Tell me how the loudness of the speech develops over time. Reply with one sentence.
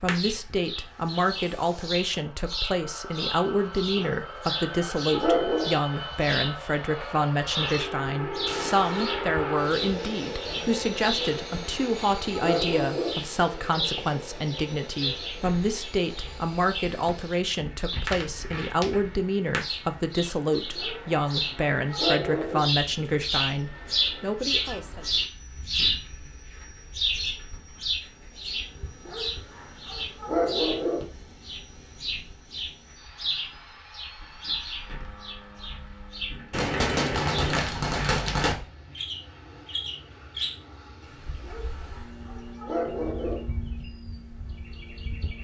The loudness of the speech stays about the same.